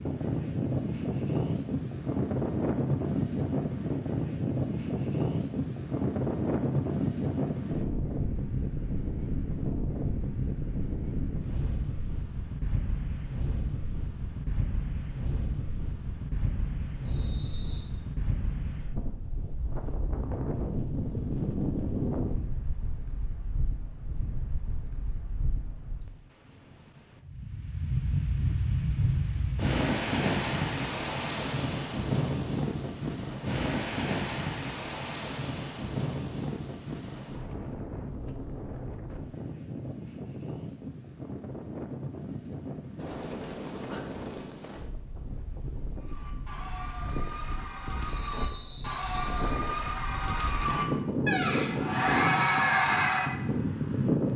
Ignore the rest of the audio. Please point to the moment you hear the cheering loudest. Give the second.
53 s.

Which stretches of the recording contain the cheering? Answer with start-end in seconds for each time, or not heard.
46.0-53.3.